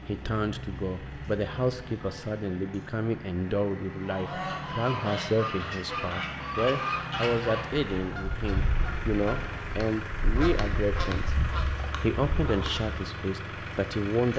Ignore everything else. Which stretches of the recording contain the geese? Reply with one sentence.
The geese can be heard from 4.0 to 12.9 s.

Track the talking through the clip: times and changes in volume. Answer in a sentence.
You can hear the talking from 0.1 to 11.3 s, at a steady volume; and briefly from 12.0 to 14.3 s.